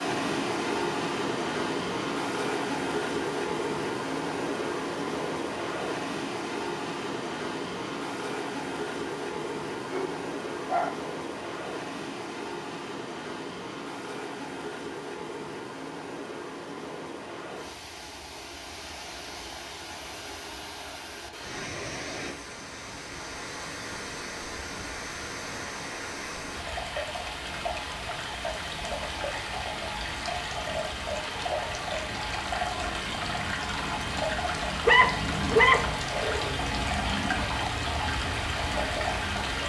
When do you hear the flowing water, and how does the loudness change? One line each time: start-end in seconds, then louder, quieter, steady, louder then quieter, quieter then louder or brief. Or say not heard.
0.0-39.6 quieter then louder.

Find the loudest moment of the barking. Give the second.
36 s.